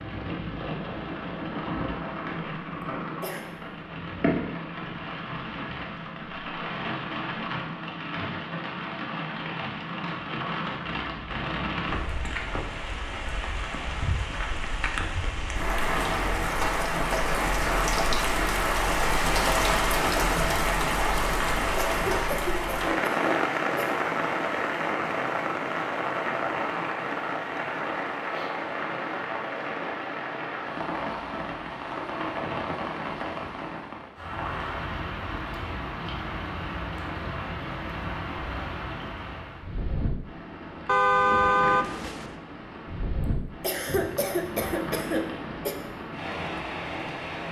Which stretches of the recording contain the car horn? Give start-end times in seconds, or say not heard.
40.9-42.3.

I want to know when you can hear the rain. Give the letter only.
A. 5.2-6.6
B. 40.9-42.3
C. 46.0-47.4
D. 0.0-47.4
D.